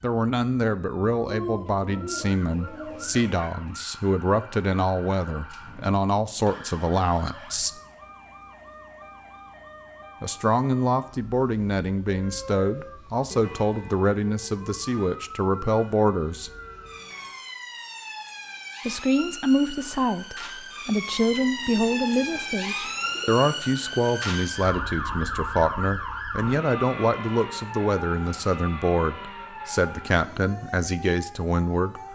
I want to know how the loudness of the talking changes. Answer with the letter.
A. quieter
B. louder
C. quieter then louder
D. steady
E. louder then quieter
D.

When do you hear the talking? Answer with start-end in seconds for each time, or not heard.
0.0-7.7, 10.2-16.5, 18.9-32.1.